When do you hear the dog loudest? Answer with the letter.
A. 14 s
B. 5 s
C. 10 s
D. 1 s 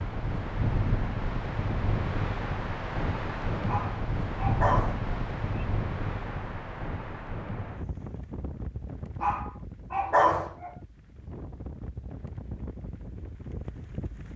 C.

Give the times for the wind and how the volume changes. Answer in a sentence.
You can hear the wind from 0.0 to 14.3 s, getting quieter.